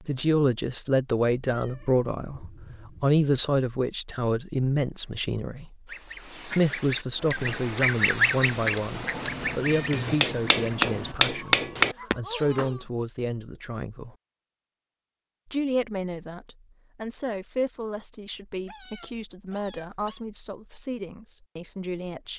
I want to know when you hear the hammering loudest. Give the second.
12 s.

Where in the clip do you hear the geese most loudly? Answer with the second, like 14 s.
8 s.